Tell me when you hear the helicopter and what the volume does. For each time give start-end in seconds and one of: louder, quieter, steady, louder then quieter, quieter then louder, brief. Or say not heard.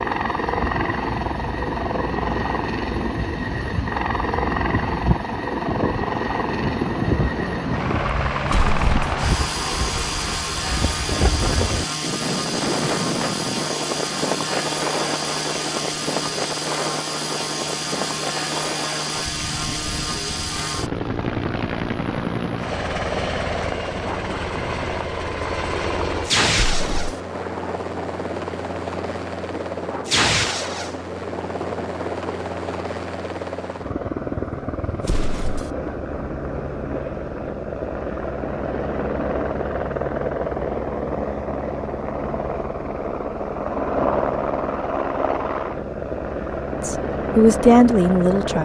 0.0-48.6 steady.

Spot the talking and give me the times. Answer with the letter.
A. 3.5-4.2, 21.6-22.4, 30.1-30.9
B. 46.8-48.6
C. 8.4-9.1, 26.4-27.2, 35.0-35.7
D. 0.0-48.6
B.